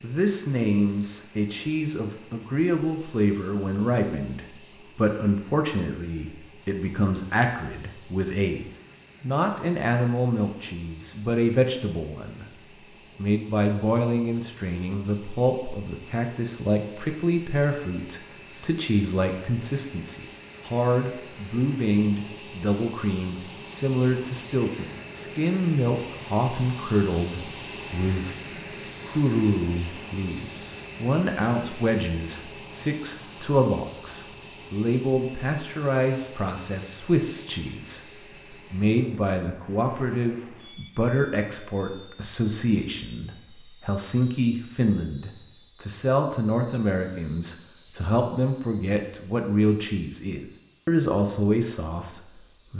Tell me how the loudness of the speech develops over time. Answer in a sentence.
The volume of the speech stays about the same.